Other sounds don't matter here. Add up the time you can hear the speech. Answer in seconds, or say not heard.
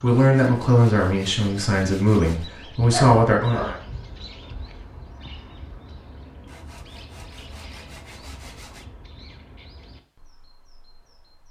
4 s.